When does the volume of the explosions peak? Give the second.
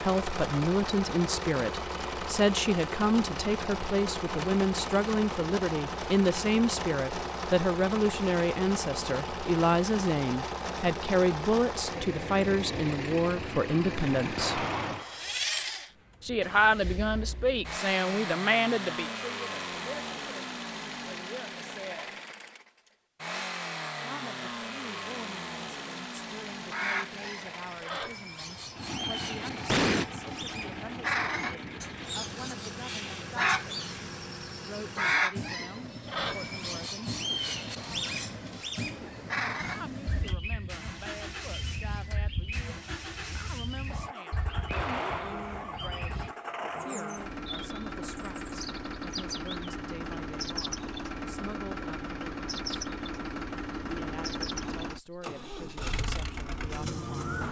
30 s.